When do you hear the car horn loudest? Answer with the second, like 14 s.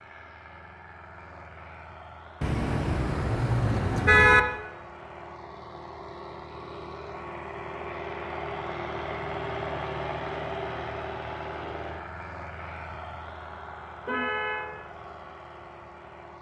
4 s.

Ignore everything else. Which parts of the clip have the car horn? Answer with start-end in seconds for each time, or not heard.
2.4-4.4, 14.1-14.7.